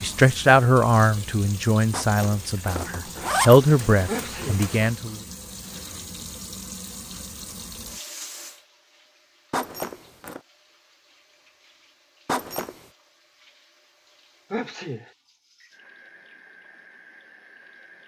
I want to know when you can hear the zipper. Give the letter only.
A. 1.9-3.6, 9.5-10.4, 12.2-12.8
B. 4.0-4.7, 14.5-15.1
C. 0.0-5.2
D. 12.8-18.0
A.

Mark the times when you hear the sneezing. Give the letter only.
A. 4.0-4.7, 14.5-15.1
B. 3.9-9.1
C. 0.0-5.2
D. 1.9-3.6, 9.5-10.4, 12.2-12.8
A.